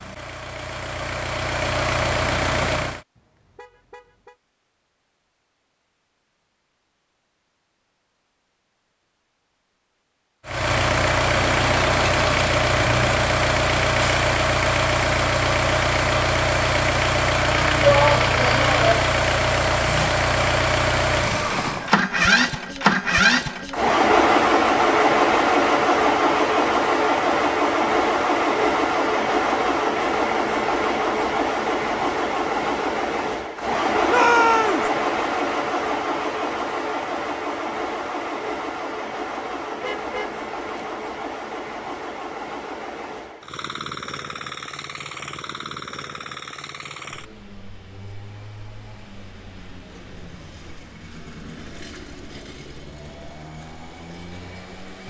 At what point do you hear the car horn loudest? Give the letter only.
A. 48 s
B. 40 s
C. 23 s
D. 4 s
B.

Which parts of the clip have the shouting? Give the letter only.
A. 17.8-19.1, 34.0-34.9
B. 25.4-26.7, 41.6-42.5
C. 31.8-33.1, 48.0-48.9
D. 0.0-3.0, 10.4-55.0
A.